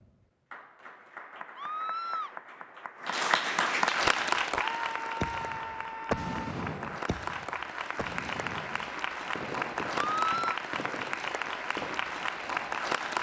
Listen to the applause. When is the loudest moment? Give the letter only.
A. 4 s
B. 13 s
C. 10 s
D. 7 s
A.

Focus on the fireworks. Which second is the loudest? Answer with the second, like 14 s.
6 s.